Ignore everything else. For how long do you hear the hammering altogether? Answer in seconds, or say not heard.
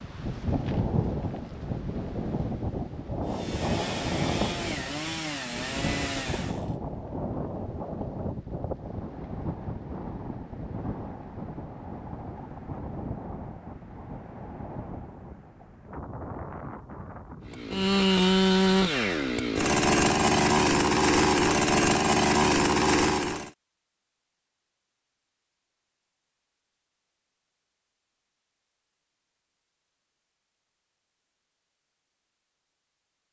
not heard.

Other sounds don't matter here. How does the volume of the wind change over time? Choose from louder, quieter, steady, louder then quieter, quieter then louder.
quieter.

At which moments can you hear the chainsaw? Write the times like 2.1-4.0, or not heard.
3.2-6.7, 17.4-23.5.